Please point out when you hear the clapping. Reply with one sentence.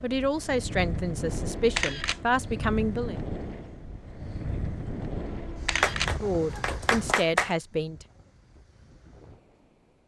The clapping can be heard from 5.8 to 7.5 s.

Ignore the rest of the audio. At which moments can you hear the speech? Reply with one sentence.
You can hear the speech from 0.0 to 3.1 s and from 6.2 to 8.1 s.